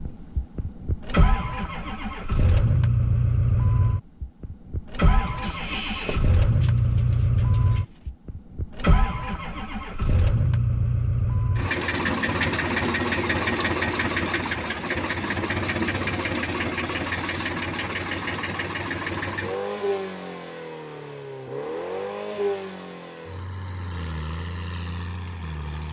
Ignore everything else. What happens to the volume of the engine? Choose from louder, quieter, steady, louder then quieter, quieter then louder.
quieter.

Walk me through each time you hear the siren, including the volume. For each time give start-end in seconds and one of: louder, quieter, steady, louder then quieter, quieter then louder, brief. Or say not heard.
not heard.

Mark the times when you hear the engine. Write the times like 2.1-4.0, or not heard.
0.0-25.8.